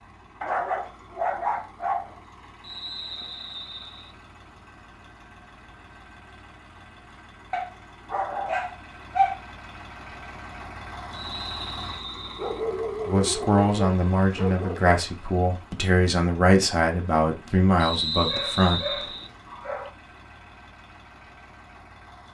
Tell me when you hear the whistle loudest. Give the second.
18 s.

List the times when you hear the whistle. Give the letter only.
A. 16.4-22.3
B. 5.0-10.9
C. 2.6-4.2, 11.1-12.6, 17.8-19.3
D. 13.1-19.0
C.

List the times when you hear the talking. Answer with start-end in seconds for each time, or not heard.
13.1-19.0.